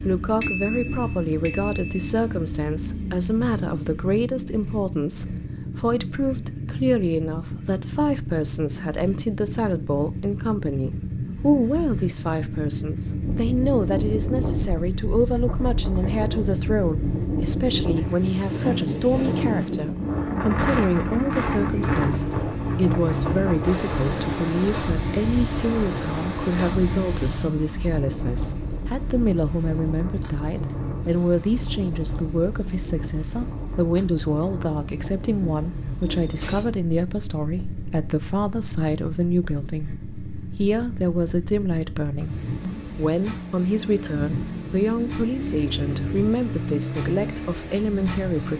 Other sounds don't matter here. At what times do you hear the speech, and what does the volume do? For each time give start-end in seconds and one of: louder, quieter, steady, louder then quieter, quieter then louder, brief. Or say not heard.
0.1-48.5 steady.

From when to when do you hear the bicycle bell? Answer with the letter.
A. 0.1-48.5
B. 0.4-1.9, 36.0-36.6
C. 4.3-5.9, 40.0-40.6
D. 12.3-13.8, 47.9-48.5
B.